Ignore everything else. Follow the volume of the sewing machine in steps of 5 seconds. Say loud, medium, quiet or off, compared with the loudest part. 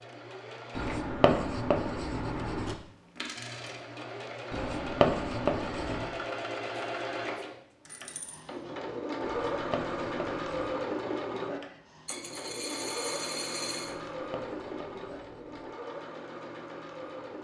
medium, loud, loud, medium.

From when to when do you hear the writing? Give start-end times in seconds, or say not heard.
0.8-2.8, 4.5-6.2, 9.2-10.8, 14.1-15.7.